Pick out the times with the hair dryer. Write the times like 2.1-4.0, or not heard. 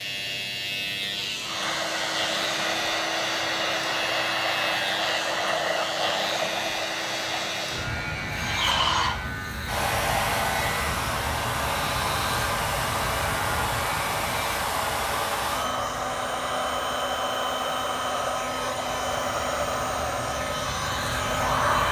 1.4-21.8.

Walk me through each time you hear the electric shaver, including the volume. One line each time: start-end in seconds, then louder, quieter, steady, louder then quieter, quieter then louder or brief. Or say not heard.
0.0-21.8 quieter.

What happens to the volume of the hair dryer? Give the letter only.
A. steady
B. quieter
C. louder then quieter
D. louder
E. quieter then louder
A.